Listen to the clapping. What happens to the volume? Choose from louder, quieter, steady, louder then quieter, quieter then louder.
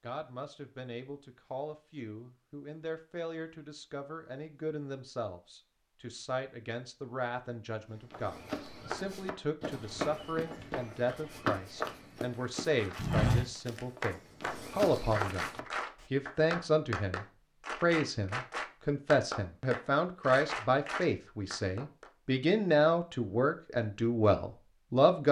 steady.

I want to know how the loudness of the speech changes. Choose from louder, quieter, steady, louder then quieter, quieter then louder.
louder.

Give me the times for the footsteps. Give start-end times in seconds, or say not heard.
8.1-16.1.